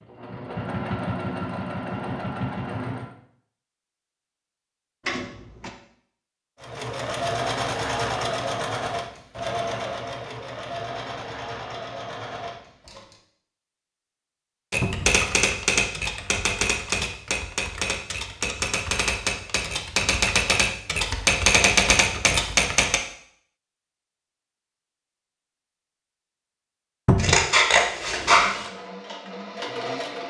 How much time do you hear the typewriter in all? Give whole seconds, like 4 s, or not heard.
8 s.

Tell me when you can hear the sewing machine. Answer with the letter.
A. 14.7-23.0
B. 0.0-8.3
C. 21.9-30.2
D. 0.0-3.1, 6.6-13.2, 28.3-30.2
D.